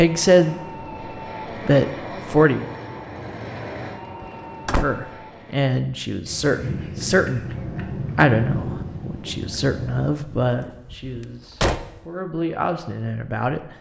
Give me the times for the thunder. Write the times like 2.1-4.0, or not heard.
6.2-10.1.